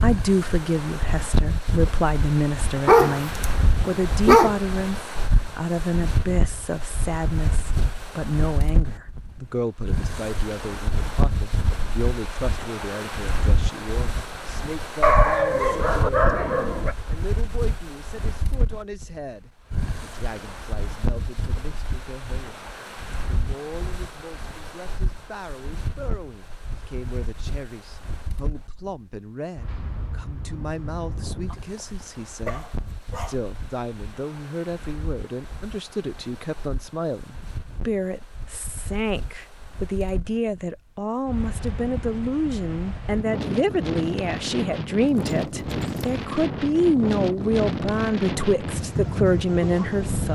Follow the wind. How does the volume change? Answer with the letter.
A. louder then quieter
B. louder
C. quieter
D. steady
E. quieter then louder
E.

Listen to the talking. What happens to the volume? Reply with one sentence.
The volume of the talking goes down, then up.